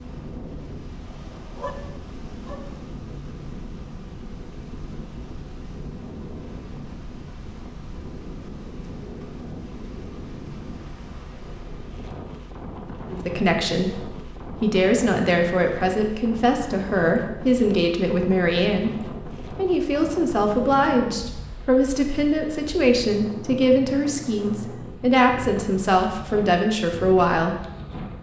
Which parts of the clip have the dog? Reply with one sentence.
You can hear the dog from 1.6 to 2.7 s.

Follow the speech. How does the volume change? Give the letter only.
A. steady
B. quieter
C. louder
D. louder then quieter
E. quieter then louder
A.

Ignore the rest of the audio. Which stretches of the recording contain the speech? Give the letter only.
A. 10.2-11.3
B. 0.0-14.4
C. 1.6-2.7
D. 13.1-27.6
D.